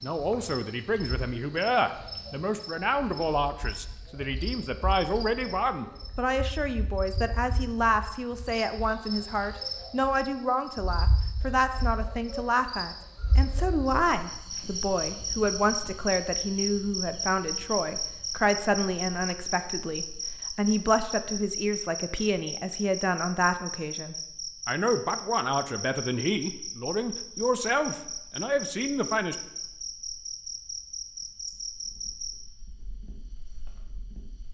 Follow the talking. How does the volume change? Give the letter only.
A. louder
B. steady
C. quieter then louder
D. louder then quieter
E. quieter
B.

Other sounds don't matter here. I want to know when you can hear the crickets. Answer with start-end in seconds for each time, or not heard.
0.0-34.4.